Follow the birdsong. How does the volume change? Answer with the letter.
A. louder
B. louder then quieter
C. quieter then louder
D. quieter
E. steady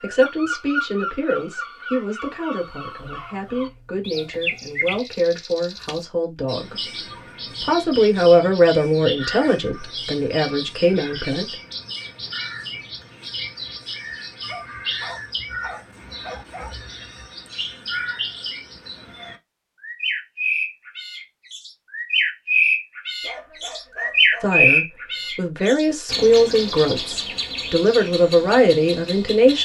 A.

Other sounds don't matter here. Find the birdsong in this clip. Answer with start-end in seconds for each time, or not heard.
0.0-29.6.